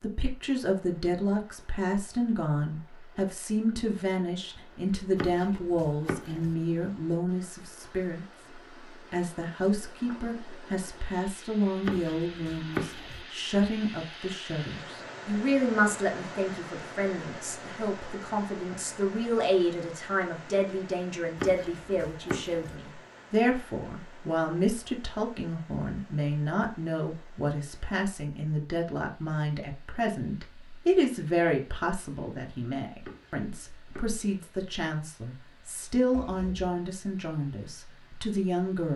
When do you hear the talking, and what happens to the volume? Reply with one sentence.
You can hear the talking from 0.0 to 8.2 s, at a steady volume; and from 9.1 to 38.9 s, at a steady volume.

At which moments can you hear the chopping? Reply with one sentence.
You can hear the chopping from 5.2 to 6.5 s, from 11.8 to 13.2 s, from 21.4 to 22.8 s and from 33.0 to 34.2 s.